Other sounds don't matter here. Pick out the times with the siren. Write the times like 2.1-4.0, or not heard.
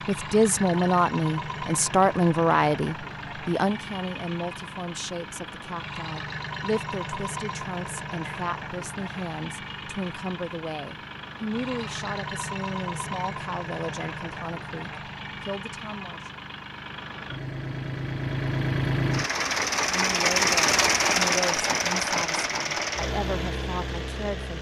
not heard.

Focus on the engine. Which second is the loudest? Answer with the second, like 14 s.
21 s.